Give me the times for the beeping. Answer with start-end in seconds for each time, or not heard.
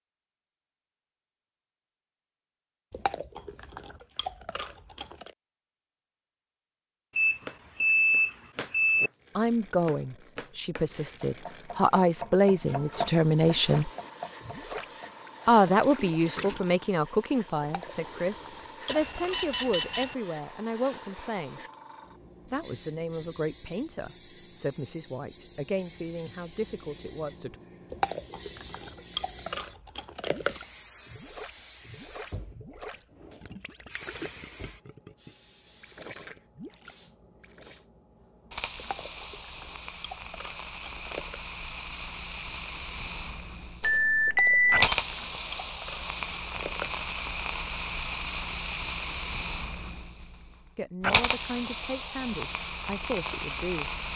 7.2-9.1, 18.9-20.1, 43.8-44.9.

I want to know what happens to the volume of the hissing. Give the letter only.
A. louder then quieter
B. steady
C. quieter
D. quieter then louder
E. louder
E.